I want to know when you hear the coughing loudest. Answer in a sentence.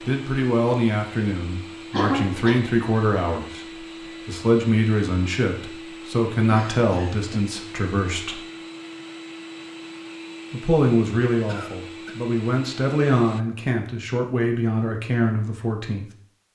The loudest moment of the coughing is at 2 seconds.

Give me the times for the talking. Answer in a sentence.
You can hear the talking from 0.0 to 8.4 s and from 10.5 to 16.1 s.